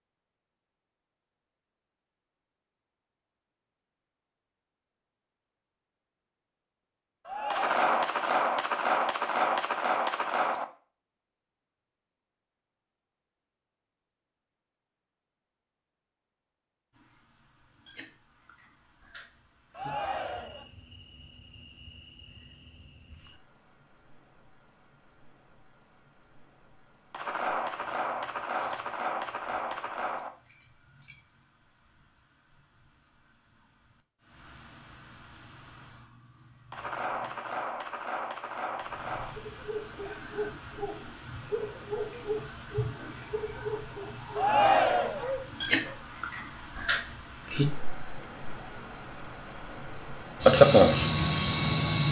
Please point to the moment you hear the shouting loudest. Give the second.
45 s.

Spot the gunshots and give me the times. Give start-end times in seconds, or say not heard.
7.5-10.7, 27.1-30.3, 36.7-39.4.